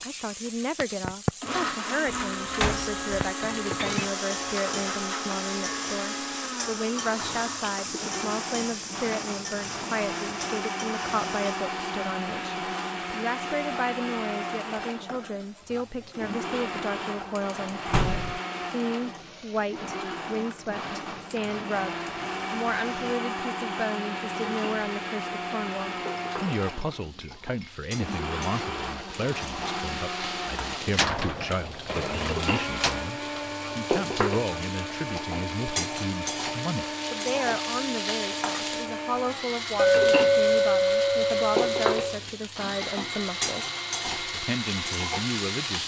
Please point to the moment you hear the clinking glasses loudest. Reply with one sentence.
The volume of the clinking glasses peaks at 40 seconds.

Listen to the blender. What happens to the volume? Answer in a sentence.
The loudness of the blender stays about the same.